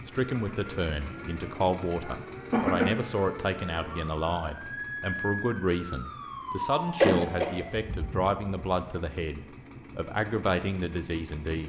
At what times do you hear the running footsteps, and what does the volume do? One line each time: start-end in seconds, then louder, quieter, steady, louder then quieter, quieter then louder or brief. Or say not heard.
not heard.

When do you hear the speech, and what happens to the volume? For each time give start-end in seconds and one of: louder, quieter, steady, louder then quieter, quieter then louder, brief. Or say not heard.
0.1-11.6 steady.